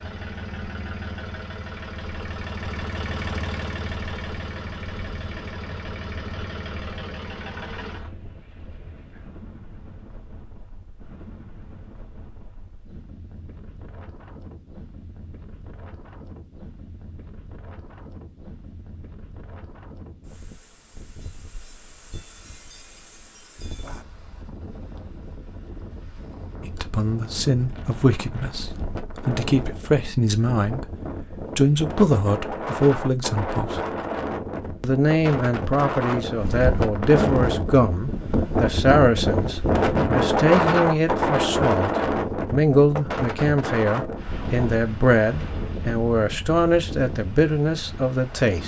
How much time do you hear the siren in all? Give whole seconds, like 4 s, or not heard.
not heard.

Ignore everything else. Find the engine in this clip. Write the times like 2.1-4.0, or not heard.
0.0-8.1.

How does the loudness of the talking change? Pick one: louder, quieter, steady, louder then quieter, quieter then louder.
steady.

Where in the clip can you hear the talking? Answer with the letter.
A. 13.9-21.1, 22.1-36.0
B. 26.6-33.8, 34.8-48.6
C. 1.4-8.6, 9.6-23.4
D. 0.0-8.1
B.